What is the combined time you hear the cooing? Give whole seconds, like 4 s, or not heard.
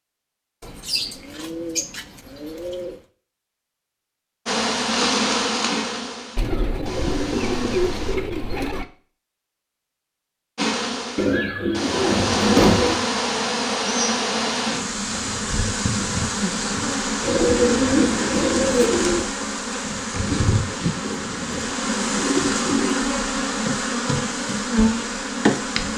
11 s.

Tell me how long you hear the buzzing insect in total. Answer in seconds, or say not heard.
19 s.